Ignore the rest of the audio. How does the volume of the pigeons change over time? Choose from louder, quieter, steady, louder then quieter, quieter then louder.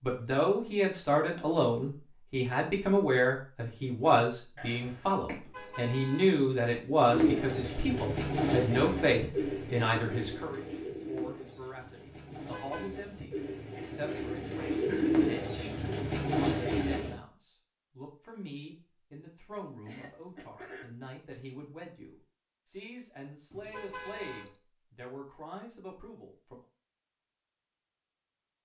quieter then louder.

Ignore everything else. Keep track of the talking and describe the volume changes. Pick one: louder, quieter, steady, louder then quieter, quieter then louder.
quieter.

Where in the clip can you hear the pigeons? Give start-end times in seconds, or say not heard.
7.0-17.1.